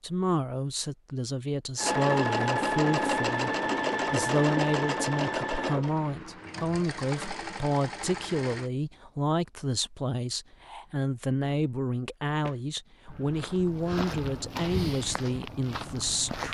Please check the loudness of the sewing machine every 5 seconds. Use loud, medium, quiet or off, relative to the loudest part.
loud, medium, off, off.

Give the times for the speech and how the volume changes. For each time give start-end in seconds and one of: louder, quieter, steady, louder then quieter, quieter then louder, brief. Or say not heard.
0.0-16.4 steady.